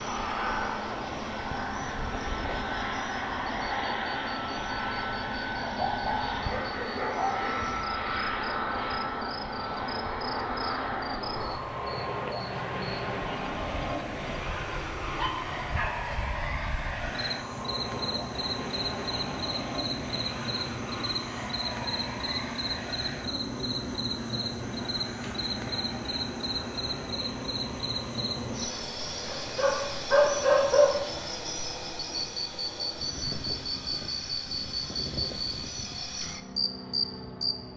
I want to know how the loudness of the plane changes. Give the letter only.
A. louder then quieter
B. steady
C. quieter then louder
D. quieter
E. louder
D.